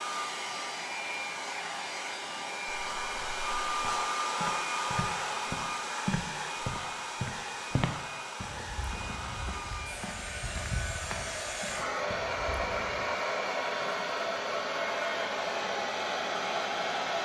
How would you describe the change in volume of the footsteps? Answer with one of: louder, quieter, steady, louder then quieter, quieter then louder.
louder then quieter.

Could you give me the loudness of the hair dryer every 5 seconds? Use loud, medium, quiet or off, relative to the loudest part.
loud, medium, loud, loud.